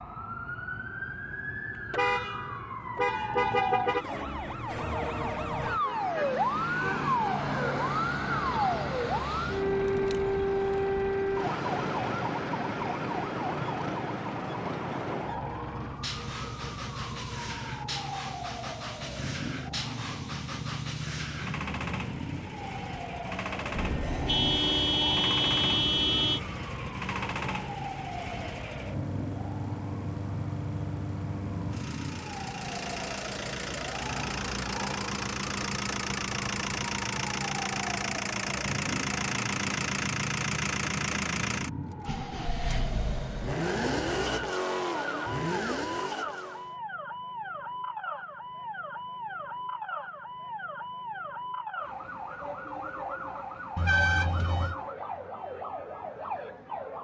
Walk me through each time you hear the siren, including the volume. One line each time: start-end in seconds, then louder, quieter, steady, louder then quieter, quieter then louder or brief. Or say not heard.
0.0-56.9 quieter.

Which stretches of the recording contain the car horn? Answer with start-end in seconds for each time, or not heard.
1.9-4.0, 23.8-26.4, 53.8-54.8.